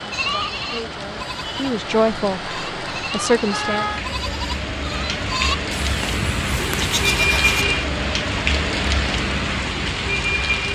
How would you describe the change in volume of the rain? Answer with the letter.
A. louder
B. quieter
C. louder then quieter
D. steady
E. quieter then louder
A.